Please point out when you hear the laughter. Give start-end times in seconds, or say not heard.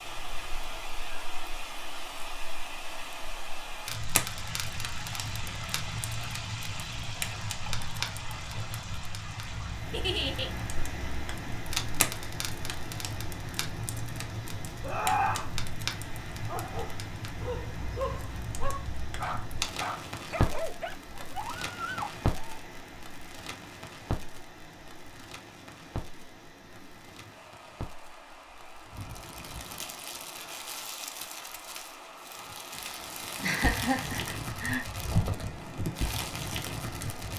9.9-10.5, 14.8-15.5, 33.4-34.9.